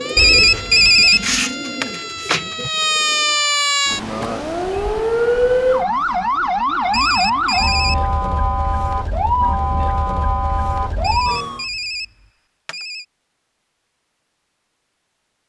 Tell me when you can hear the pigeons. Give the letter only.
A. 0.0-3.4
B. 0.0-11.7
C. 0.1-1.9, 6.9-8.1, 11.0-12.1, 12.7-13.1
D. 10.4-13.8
A.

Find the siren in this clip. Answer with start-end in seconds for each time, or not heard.
0.0-11.7.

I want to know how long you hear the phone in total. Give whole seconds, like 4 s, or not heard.
4 s.